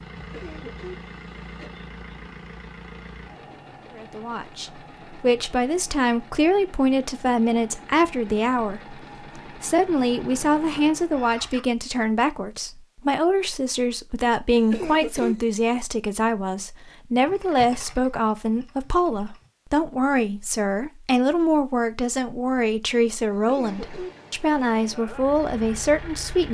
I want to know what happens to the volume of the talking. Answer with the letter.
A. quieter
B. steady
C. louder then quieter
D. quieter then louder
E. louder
B.